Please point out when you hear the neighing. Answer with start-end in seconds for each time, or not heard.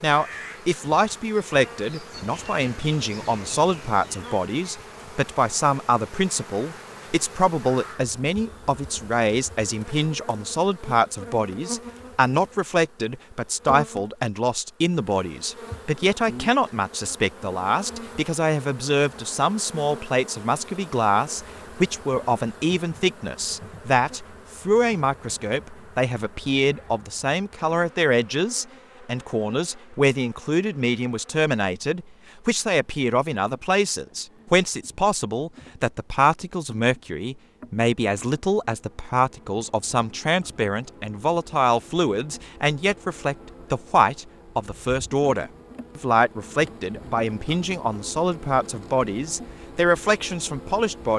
not heard.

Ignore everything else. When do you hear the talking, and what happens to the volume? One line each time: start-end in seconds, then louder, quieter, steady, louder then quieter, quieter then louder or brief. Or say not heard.
0.0-51.1 steady.